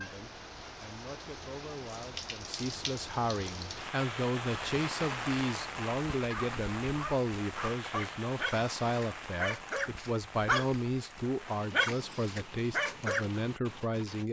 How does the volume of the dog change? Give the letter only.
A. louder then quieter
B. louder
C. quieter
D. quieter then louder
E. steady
B.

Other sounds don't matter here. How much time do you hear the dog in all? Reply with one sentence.
You can hear the dog for 7 seconds altogether.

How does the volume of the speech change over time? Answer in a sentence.
The volume of the speech goes up.